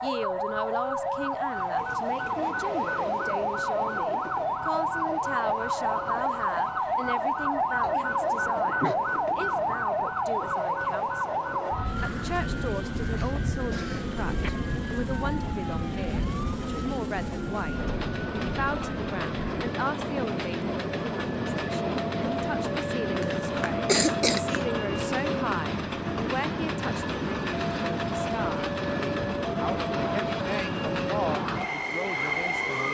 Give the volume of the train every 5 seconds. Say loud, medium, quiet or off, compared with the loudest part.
medium, medium, medium, loud, loud, loud, loud.